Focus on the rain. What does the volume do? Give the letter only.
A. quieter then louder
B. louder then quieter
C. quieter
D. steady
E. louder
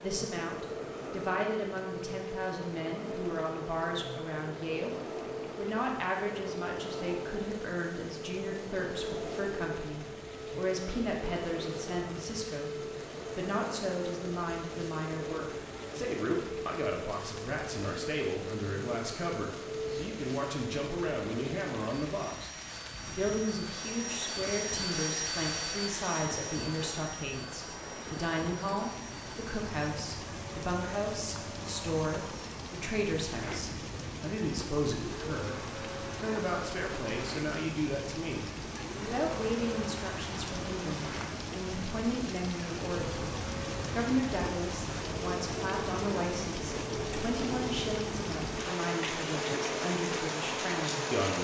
E.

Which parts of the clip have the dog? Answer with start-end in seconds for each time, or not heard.
not heard.